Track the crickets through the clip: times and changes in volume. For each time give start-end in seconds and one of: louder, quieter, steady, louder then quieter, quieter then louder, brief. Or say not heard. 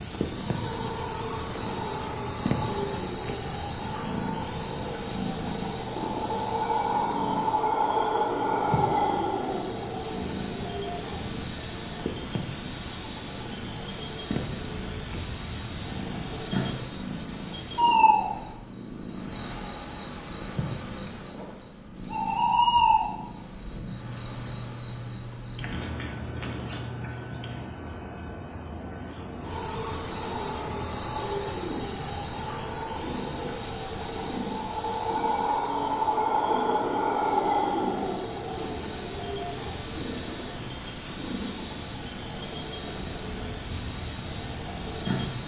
0.0-45.4 steady.